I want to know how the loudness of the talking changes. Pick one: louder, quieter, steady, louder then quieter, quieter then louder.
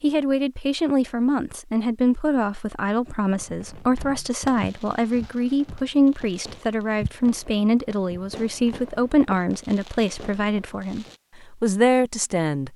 steady.